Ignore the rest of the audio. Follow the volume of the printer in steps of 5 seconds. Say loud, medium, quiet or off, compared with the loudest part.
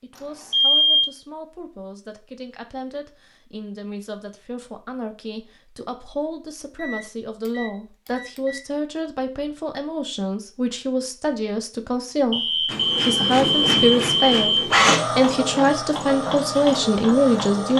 off, off, loud, medium.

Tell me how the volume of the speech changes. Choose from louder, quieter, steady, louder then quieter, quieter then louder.
louder.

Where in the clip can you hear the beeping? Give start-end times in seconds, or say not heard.
0.1-1.1, 6.8-8.6, 12.3-14.7.